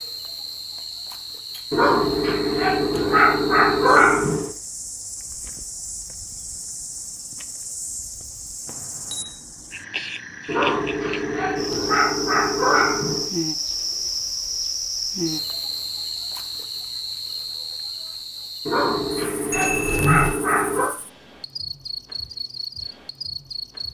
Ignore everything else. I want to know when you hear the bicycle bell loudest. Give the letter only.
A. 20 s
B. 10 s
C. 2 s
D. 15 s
A.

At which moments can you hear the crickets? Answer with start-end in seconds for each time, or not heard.
0.0-23.8.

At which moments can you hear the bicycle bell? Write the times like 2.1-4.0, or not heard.
0.8-1.6, 8.7-9.3, 19.5-20.4.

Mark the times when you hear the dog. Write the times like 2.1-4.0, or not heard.
1.7-4.5, 10.4-13.3, 18.6-20.9.